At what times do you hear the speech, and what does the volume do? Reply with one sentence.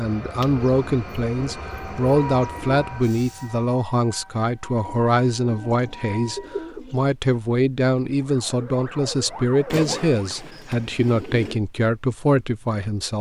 The speech can be heard from 0.0 to 13.1 s, at a steady volume.